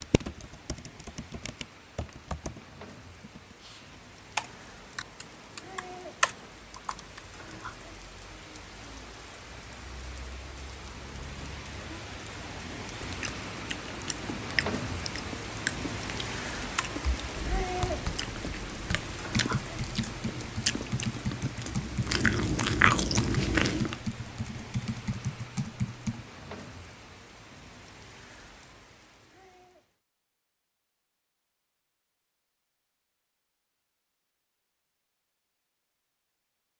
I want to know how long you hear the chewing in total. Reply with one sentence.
The chewing can be heard for 11 seconds in total.